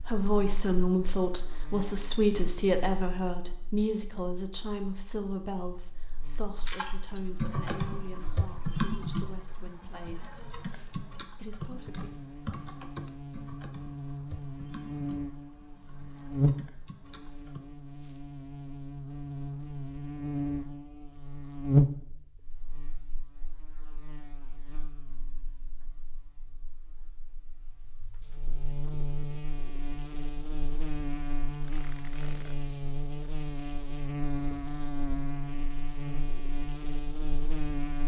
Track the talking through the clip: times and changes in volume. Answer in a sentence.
You can hear the talking from 0.0 to 10.5 s, getting quieter; and briefly from 11.3 to 12.1 s.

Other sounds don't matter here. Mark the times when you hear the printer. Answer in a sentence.
You can't hear the printer here.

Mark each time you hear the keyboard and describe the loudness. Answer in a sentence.
The keyboard can be heard from 6.7 to 17.6 s, getting quieter.